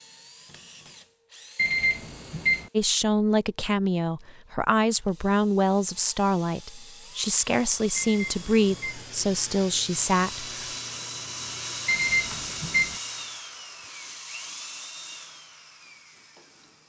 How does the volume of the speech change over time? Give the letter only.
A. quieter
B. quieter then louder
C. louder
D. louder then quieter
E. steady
E.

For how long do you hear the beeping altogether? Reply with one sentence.
You can hear the beeping for 3 seconds altogether.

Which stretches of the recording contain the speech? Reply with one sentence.
You can hear the speech from 2.8 to 10.7 s.